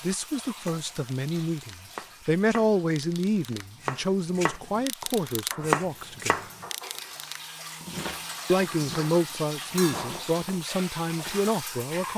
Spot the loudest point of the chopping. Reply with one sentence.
The volume of the chopping peaks at 6 seconds.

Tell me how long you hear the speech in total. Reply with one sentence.
You can hear the speech for 10 seconds altogether.